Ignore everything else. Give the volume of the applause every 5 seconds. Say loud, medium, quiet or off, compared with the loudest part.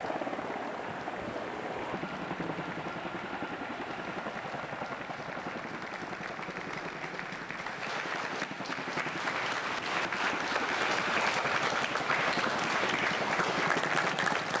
quiet, medium, loud.